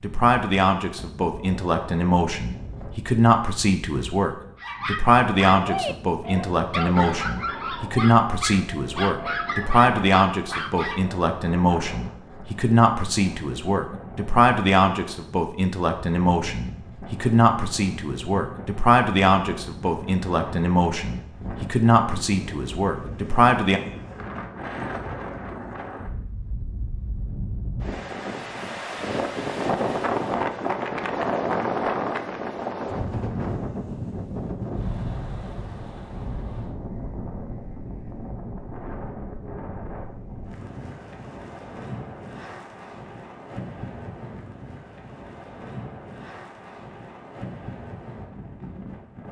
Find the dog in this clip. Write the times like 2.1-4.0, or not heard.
4.5-11.1.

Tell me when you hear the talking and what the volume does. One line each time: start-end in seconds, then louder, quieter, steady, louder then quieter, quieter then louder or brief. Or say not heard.
0.0-23.8 steady.